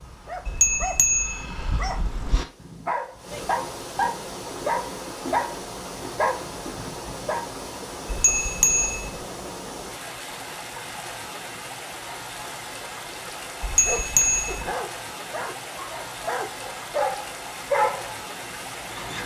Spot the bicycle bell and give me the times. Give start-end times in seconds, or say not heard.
0.5-2.4, 8.1-9.2, 13.6-14.7.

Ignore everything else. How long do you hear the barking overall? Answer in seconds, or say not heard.
13 s.